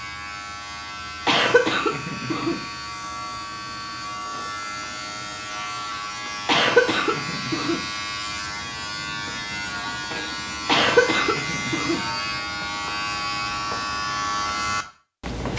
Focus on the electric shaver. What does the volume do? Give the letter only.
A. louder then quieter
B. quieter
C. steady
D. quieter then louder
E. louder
E.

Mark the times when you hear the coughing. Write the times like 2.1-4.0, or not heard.
1.2-2.8, 6.5-8.0, 10.7-12.2.